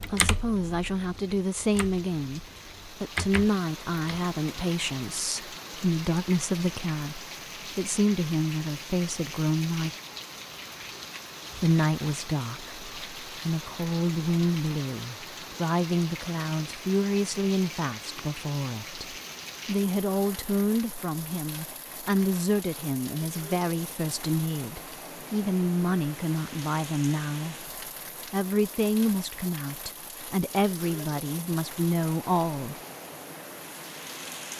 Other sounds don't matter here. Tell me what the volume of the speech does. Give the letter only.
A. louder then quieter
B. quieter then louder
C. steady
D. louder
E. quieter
C.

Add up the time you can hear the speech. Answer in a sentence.
The speech can be heard for 30 seconds in total.